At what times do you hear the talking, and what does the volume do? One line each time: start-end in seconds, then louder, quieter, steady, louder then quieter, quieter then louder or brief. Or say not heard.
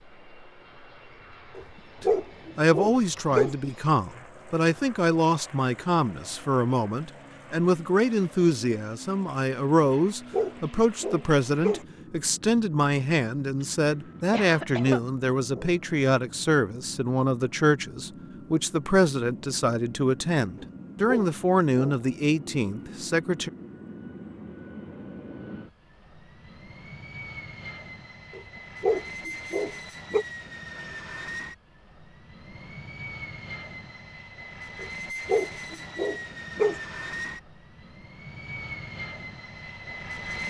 2.0-23.5 steady.